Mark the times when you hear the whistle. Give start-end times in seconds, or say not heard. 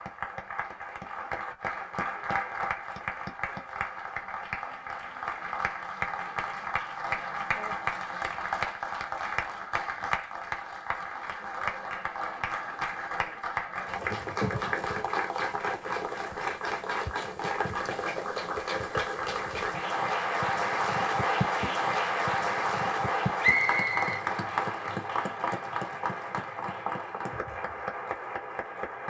23.4-24.2.